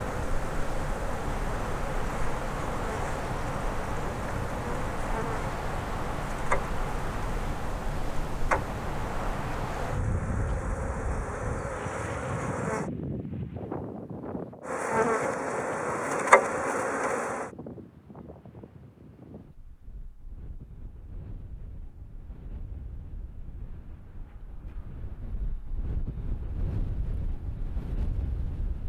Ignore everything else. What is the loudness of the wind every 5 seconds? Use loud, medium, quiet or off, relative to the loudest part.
loud, loud, loud, medium, quiet, medium.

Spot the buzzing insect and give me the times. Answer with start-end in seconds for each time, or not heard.
0.0-12.9, 14.6-17.5.